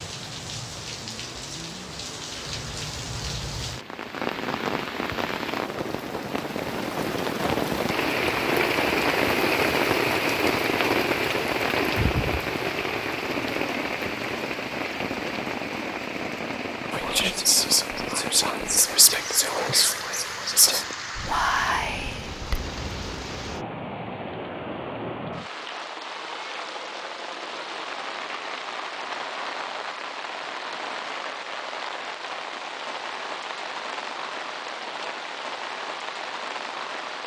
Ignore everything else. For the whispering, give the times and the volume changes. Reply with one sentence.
The whispering can be heard from 16.9 to 22.6 s, at a steady volume.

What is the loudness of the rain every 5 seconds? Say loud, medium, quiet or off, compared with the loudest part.
medium, loud, loud, medium, medium, medium, medium, medium.